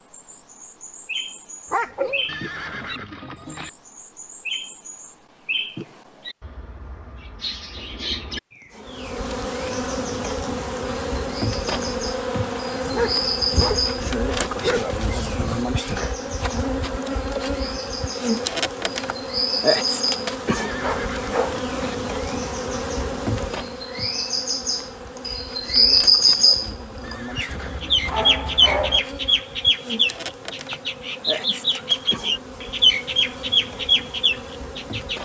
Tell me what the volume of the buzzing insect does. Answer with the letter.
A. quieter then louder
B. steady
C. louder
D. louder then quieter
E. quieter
E.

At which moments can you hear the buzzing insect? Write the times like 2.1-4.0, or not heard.
8.7-35.1.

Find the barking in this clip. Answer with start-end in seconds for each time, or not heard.
1.7-3.0, 12.8-15.7, 20.8-21.6, 27.4-29.0.